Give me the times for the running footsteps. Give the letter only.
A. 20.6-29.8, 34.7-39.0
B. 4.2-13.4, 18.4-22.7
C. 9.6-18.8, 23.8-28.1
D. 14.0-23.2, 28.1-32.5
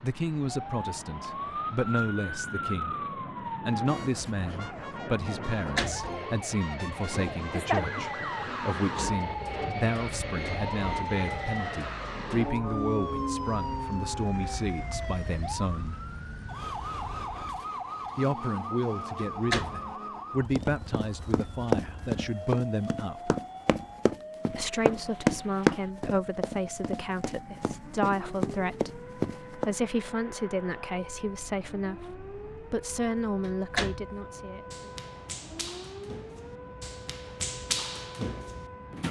A.